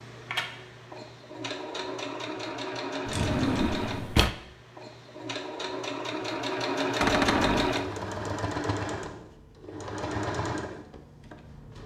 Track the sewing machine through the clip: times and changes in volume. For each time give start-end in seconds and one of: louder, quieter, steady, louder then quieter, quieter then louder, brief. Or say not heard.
0.0-11.8 louder then quieter.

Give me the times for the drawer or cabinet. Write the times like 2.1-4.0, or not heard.
3.0-4.3, 7.0-7.8.